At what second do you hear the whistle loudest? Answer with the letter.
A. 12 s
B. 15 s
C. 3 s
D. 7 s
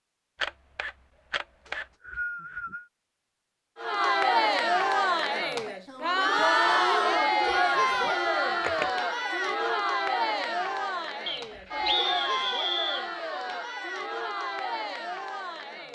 A.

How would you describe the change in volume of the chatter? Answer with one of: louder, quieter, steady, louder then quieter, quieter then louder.
quieter.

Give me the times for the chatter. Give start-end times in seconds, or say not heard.
3.8-15.8.